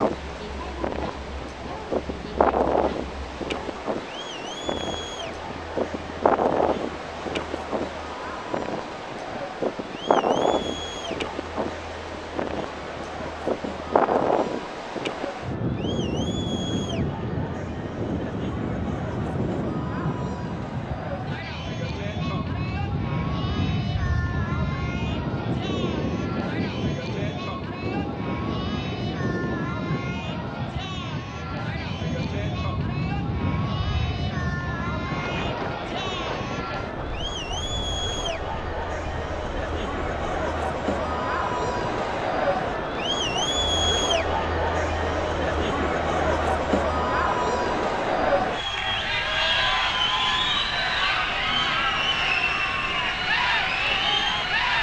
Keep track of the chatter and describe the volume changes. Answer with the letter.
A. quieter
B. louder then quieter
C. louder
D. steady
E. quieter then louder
C.